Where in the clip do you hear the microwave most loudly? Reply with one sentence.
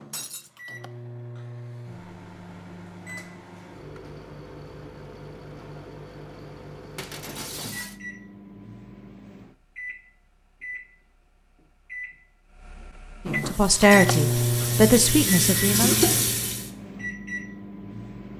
The volume of the microwave peaks at 14 seconds.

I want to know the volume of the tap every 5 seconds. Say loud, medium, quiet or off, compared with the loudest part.
off, off, medium, loud.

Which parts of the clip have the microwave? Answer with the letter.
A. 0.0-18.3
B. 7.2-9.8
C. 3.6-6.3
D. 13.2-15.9
A.